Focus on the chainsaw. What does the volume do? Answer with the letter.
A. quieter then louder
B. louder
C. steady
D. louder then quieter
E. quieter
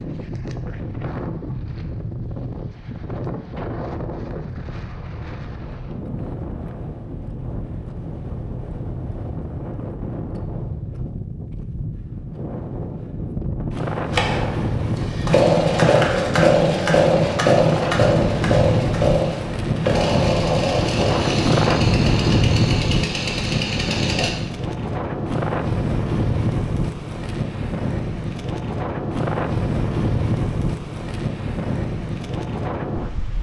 E.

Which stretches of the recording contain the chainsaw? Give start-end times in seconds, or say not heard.
14.1-24.3.